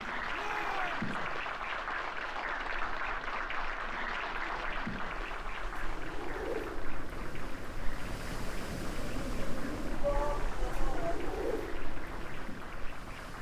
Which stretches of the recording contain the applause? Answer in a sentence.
The applause can be heard from 0.0 to 13.3 s.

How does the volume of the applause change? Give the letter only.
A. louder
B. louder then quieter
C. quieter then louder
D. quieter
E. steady
D.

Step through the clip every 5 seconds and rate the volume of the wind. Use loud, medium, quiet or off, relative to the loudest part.
quiet, loud, loud.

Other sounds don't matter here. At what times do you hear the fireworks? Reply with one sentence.
You can't hear the fireworks here.